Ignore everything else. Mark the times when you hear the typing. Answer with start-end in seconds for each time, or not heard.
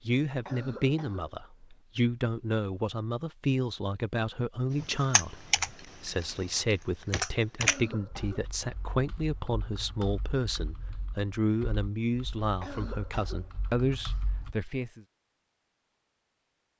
4.8-14.6.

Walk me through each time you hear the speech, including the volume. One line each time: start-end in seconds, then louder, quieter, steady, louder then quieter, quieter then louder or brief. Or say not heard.
0.1-15.1 steady.